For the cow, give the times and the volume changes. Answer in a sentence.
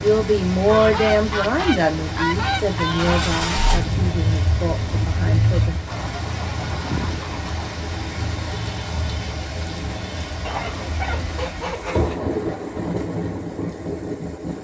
You can't hear the cow here.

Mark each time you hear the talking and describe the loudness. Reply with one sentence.
The talking can be heard from 0.0 to 5.8 s, getting quieter.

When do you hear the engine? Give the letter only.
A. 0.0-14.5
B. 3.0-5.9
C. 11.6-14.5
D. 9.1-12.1
B.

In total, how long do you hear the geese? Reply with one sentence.
You can hear the geese for 6 seconds altogether.